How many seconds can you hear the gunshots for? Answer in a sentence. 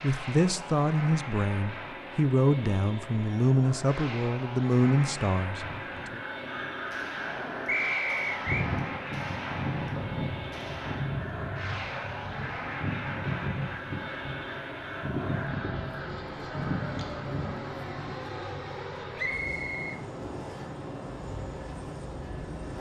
You can hear the gunshots for 4 seconds altogether.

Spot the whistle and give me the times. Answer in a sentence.
The whistle can be heard from 7.7 to 8.7 s and from 19.1 to 20.6 s.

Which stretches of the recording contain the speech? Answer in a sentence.
The speech can be heard from 0.0 to 6.2 s.